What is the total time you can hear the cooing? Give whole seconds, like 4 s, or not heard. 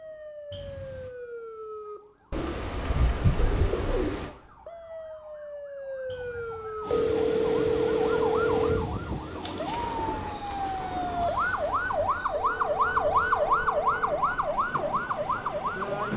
4 s.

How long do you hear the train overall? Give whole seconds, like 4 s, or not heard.
9 s.